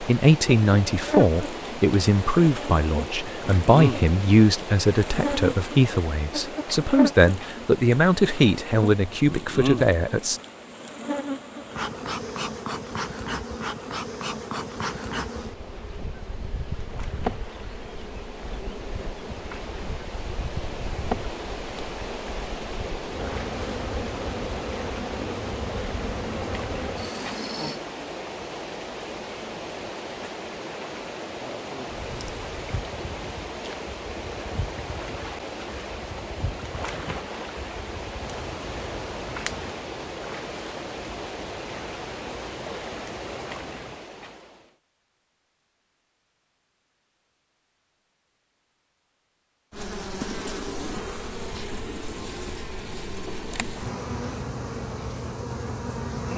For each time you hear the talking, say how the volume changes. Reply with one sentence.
The talking can be heard from 0.0 to 10.4 s, at a steady volume.